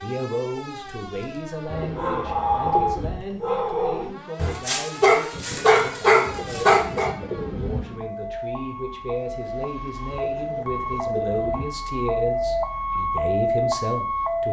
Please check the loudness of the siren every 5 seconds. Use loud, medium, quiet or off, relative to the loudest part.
quiet, medium, loud.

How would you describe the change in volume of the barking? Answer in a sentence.
The loudness of the barking goes up.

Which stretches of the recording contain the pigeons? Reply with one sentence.
You can hear the pigeons from 1.6 to 3.2 s, from 6.2 to 7.8 s and from 10.1 to 11.7 s.